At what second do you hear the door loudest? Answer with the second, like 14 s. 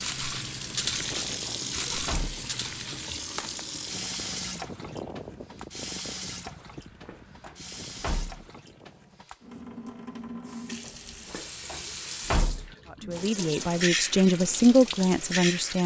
12 s.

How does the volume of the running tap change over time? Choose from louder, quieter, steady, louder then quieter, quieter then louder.
quieter then louder.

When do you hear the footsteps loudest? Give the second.
1 s.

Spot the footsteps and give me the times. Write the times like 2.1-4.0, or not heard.
0.0-3.6.